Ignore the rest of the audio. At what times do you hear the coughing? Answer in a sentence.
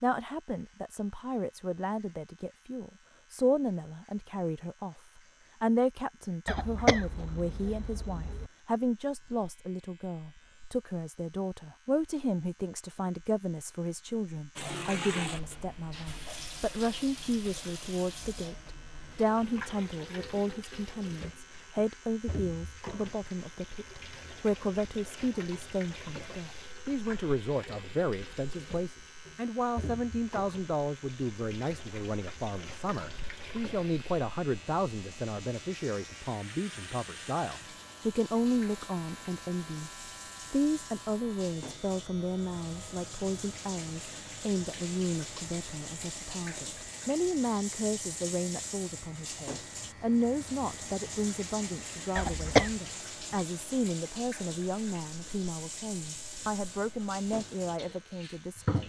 You can hear the coughing from 6.5 to 8.5 s and from 52.1 to 52.8 s.